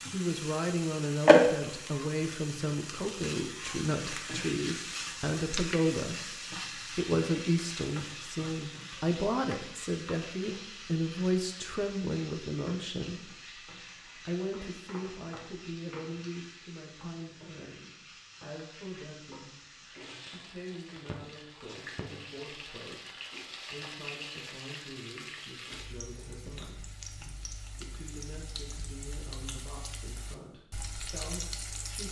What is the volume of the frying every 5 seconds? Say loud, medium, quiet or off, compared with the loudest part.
loud, medium, quiet, quiet, quiet, quiet, medium.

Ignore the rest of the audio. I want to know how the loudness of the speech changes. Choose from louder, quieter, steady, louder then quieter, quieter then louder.
quieter.